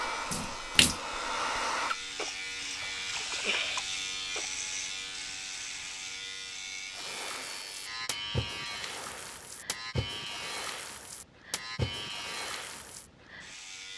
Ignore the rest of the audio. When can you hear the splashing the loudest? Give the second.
1 s.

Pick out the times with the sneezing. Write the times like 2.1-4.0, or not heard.
not heard.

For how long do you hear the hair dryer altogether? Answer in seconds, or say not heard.
2 s.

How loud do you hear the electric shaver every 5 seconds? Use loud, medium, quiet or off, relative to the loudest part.
loud, loud, medium.